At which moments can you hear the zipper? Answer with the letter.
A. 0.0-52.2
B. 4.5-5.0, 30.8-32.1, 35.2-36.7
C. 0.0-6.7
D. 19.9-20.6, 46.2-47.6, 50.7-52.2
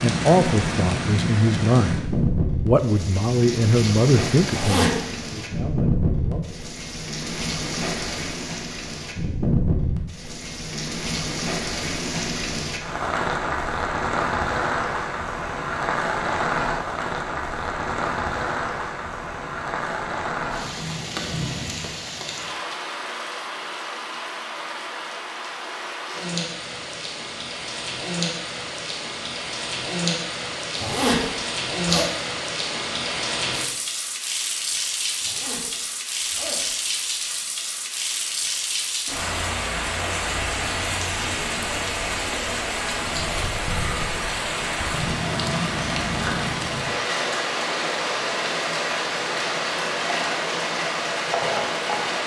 B.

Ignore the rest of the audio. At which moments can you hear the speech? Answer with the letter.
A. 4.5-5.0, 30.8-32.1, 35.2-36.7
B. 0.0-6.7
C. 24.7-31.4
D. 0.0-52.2
B.